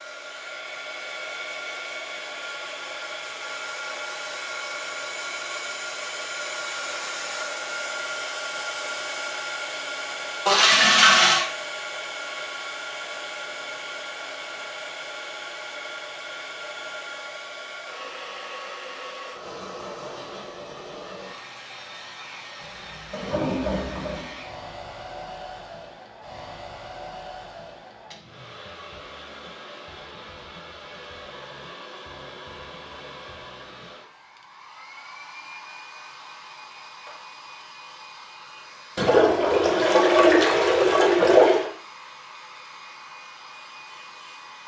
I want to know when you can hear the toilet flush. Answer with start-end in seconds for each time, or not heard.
10.4-11.4, 22.6-24.4, 39.0-41.7.